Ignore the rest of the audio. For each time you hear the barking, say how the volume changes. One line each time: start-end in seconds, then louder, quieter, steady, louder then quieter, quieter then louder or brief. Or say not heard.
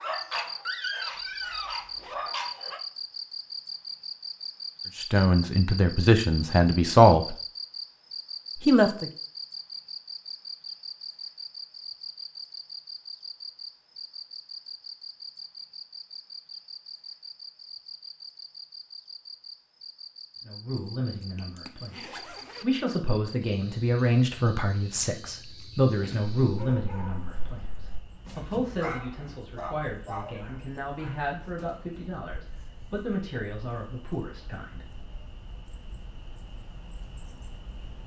0.0-2.8 brief
26.4-32.2 louder then quieter.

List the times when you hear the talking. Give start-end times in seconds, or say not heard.
5.0-7.3, 8.7-9.1, 20.4-34.9.